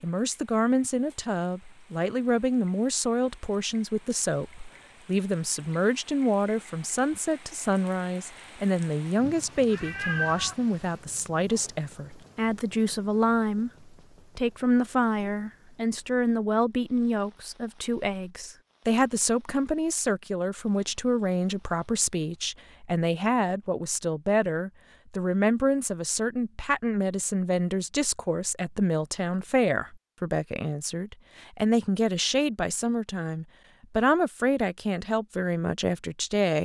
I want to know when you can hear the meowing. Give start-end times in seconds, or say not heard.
9.2-10.6.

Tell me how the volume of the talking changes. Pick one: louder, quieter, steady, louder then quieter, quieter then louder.
steady.